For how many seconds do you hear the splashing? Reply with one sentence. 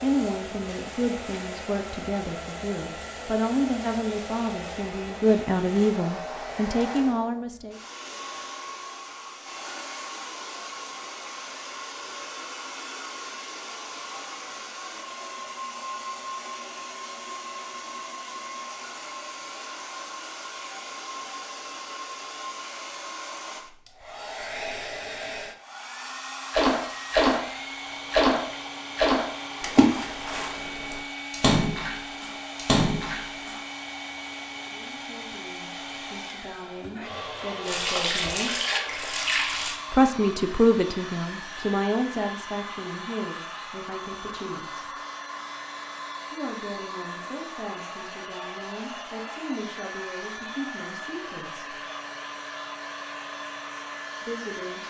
The splashing can be heard for 9 seconds in total.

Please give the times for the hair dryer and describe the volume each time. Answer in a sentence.
The hair dryer can be heard from 0.0 to 54.8 s, at a steady volume.